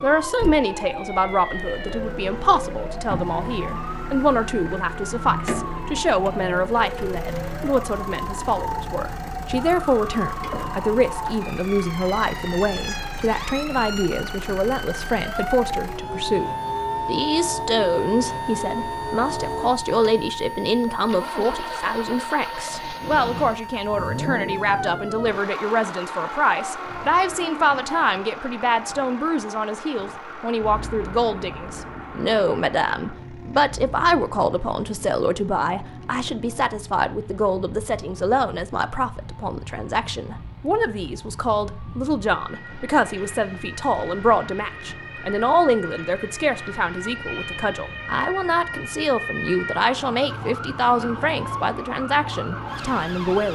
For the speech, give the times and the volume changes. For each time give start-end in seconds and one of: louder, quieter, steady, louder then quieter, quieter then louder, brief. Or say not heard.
0.0-53.5 steady.